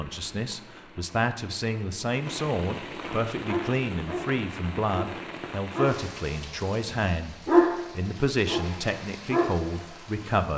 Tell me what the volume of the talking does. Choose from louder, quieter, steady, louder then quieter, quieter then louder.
steady.